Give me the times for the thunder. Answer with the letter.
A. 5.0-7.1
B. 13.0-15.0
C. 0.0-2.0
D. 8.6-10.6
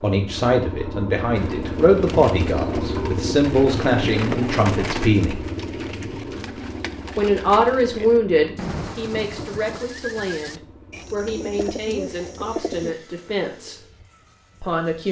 D.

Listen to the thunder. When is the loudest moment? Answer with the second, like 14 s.
9 s.